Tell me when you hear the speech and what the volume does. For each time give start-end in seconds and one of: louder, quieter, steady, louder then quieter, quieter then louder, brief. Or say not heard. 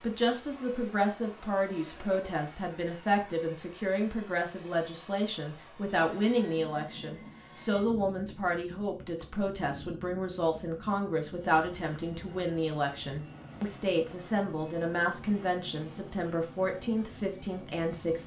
0.0-18.2 steady.